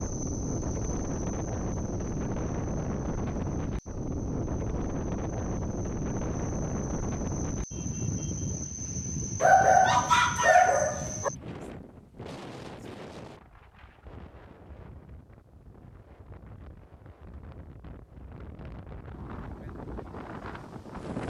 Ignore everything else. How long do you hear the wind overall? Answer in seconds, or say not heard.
21 s.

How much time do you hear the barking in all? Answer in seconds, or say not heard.
2 s.